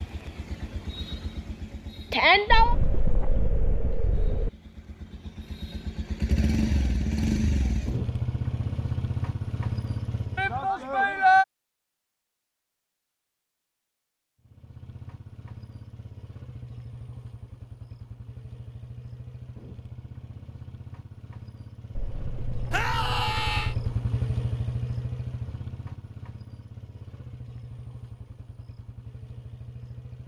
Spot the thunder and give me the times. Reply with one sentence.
You can hear the thunder from 2.5 to 4.5 s and from 21.9 to 23.9 s.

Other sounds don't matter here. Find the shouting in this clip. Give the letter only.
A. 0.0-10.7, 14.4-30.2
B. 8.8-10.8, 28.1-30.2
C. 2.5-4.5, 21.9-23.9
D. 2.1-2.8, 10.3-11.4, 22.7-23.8
D.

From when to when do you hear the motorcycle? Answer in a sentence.
The motorcycle can be heard from 0.0 to 10.7 s and from 14.4 to 30.2 s.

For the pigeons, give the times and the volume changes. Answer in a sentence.
The pigeons can't be heard in this clip.